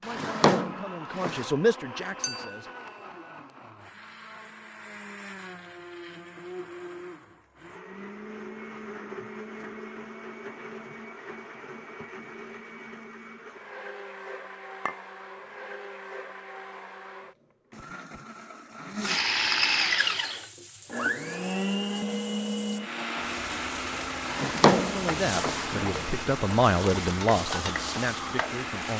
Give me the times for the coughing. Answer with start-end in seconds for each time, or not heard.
not heard.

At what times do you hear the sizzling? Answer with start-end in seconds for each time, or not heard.
20.2-28.9.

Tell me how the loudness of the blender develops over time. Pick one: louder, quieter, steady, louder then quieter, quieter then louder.
louder then quieter.